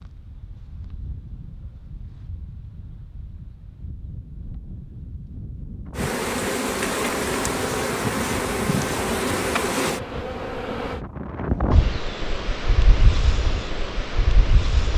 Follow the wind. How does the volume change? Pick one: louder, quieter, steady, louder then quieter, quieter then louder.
louder.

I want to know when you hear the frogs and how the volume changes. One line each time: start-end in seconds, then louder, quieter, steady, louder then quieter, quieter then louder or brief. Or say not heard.
not heard.